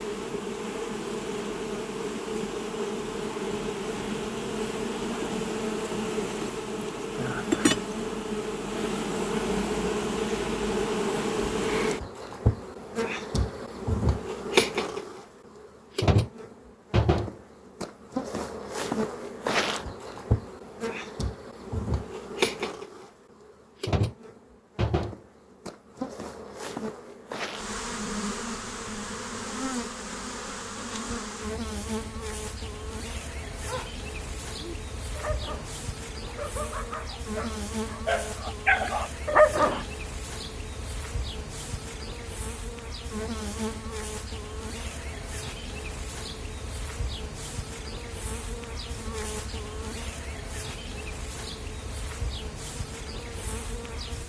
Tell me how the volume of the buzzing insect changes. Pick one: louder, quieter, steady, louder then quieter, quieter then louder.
quieter.